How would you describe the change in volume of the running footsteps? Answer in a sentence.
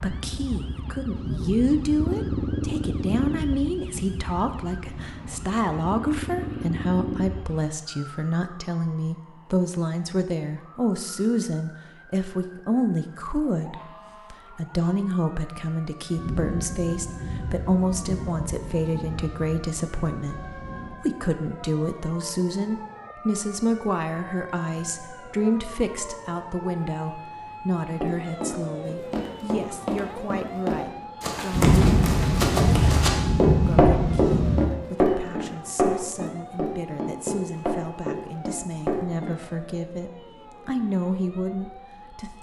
The loudness of the running footsteps goes up, then down.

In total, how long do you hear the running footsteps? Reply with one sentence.
The running footsteps can be heard for 11 seconds in total.